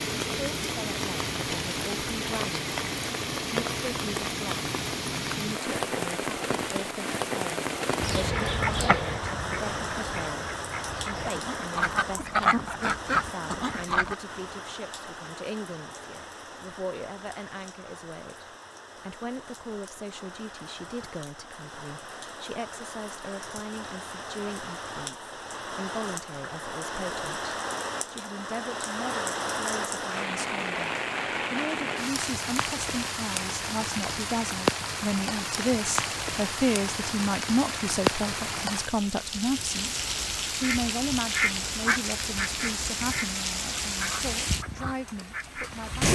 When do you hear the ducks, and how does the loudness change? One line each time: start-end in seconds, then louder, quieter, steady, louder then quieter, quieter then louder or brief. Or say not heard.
8.0-14.2 quieter then louder
40.5-45.8 quieter.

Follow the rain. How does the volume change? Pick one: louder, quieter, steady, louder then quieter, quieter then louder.
quieter then louder.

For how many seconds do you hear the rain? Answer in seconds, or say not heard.
46 s.